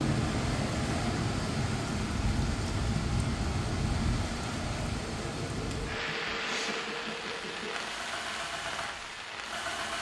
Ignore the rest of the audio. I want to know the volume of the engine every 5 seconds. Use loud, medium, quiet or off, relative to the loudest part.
off, loud.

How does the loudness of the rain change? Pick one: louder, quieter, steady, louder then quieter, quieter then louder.
quieter.